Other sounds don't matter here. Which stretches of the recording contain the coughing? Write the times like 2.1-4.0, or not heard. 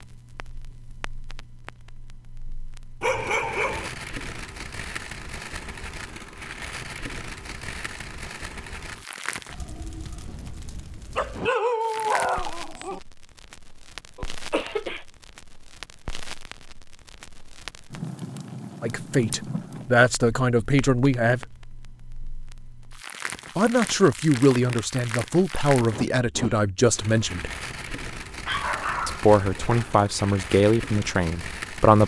14.2-15.1.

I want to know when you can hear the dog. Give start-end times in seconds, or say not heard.
3.0-3.9, 11.2-13.0, 28.4-29.9.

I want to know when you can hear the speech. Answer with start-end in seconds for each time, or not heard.
18.8-21.6, 23.6-27.5, 29.1-32.0.